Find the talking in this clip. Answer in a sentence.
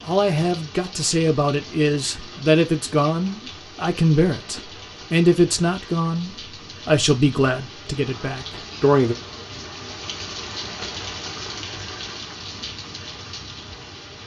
The talking can be heard from 0.0 to 9.2 s.